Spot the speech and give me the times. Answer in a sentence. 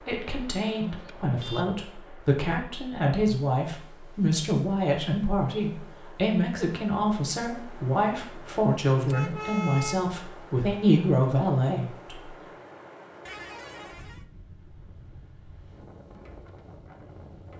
The speech can be heard from 0.0 to 12.3 s.